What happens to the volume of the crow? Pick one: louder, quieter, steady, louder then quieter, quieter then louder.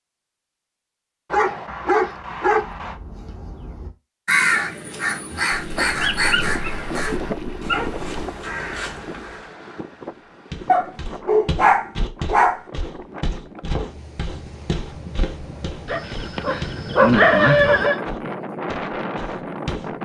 louder then quieter.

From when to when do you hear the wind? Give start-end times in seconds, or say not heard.
5.8-19.9.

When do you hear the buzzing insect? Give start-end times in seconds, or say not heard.
not heard.